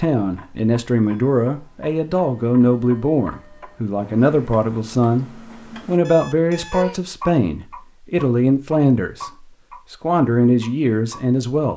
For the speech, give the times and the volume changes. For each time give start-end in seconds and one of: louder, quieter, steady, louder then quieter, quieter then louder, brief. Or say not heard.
0.0-11.7 steady.